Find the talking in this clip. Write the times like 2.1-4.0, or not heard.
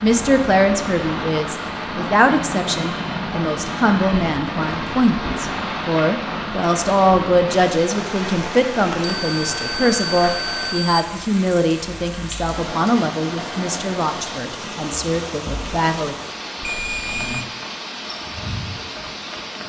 0.0-16.1.